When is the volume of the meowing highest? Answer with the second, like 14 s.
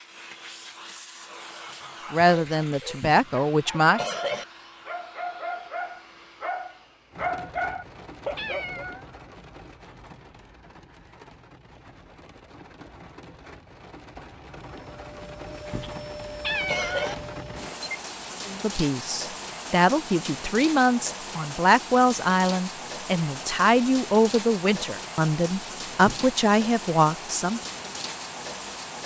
17 s.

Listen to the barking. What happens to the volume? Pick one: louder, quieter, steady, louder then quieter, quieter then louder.
louder.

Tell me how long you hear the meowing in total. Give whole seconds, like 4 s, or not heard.
2 s.